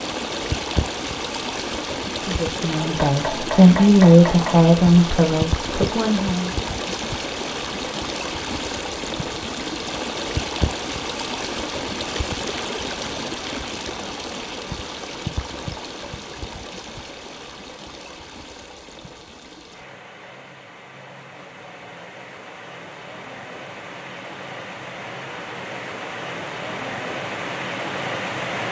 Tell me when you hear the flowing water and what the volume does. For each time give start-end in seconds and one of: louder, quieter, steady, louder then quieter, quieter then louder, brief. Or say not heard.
0.0-28.6 quieter then louder.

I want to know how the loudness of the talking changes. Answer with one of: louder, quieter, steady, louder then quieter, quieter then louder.
louder then quieter.